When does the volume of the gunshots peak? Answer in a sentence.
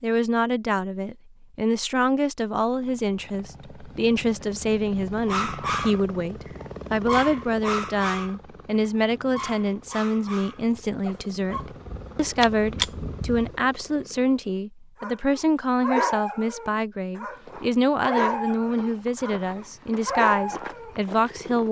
The loudest moment of the gunshots is at 13 seconds.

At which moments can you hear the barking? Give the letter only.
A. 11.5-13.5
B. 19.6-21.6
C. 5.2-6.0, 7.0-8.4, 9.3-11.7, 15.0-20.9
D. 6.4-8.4
C.